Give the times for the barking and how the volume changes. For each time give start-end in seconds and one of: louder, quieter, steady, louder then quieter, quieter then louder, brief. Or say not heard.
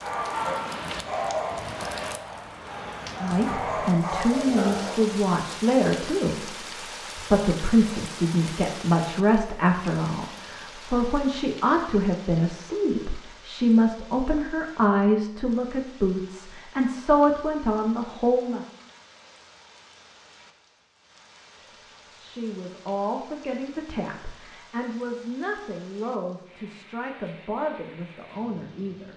0.0-5.0 quieter then louder.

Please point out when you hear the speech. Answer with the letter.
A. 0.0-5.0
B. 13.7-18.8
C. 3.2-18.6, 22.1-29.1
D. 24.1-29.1
C.